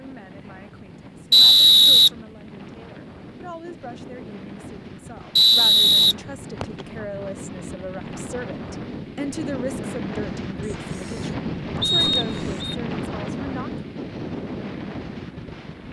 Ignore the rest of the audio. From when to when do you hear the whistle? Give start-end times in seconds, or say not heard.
1.3-2.1, 5.3-6.8, 11.8-12.8.